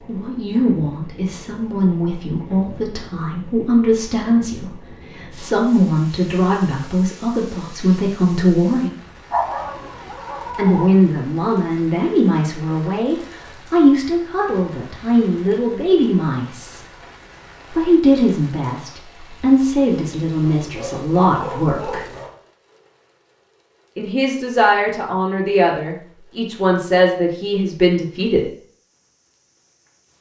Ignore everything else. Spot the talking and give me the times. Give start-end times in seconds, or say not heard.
0.1-8.9, 10.6-16.9, 17.7-22.1, 23.9-28.5.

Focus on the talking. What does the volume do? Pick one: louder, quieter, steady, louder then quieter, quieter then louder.
steady.